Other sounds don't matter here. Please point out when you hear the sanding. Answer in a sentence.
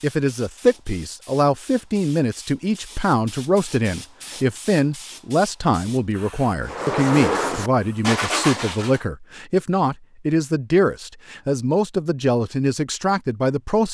You can hear the sanding from 6.6 to 9.0 s.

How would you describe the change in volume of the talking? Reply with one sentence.
The volume of the talking stays about the same.